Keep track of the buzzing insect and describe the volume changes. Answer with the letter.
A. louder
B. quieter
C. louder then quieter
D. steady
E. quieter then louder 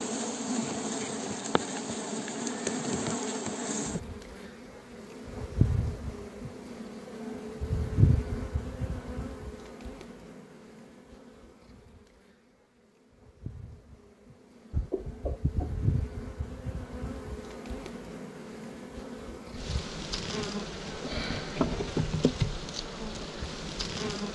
E.